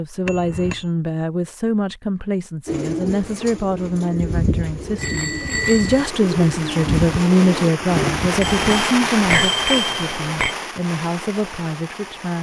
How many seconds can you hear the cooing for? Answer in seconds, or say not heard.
6 s.